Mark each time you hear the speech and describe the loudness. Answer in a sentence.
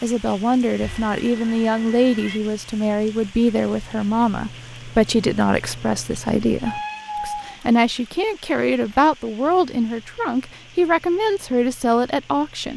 You can hear the speech from 0.0 to 12.7 s, at a steady volume.